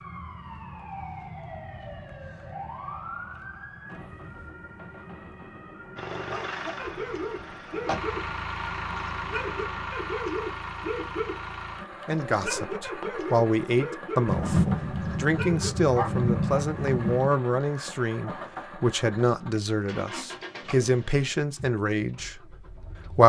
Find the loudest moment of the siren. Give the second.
3 s.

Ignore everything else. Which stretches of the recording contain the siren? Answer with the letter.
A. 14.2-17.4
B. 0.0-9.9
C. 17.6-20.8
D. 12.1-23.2
B.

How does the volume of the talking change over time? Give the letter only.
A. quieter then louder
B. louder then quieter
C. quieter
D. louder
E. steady
E.